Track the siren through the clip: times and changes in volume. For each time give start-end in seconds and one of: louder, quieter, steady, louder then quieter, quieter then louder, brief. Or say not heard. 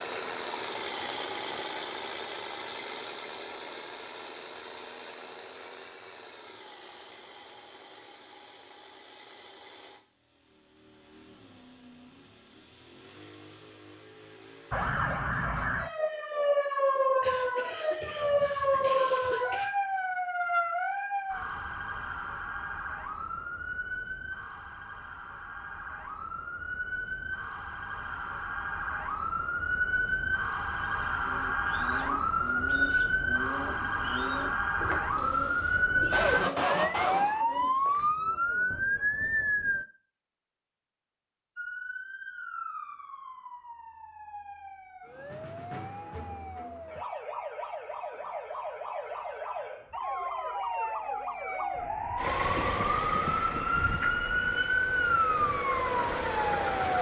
14.7-39.9 quieter then louder
41.5-56.9 louder.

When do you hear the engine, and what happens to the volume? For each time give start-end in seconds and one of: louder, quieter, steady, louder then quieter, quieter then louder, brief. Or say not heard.
0.0-14.9 quieter
52.1-56.9 quieter then louder.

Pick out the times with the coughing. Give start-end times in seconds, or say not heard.
17.2-19.7, 36.1-37.3.